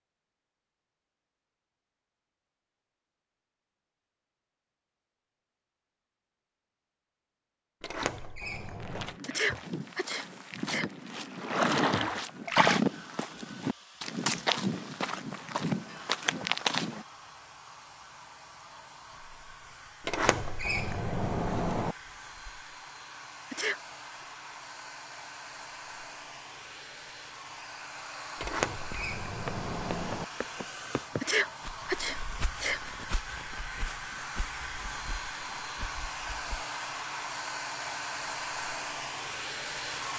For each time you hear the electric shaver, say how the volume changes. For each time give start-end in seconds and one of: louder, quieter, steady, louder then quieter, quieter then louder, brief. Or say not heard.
not heard.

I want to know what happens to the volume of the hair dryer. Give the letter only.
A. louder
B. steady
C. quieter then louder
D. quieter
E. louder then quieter
A.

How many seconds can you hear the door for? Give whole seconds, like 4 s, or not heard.
5 s.